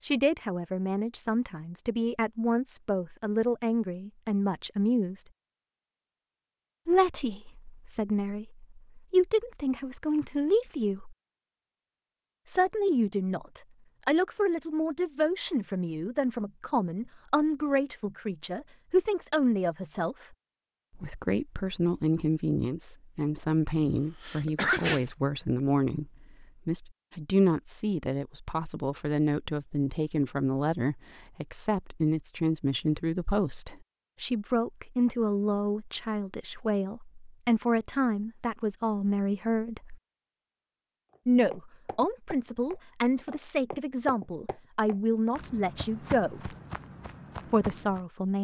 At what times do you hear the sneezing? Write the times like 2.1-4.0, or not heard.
23.8-25.1.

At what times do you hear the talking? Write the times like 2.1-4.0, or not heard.
0.0-5.2, 6.8-11.2, 12.4-20.2, 20.9-40.0, 41.2-46.5, 47.5-48.3.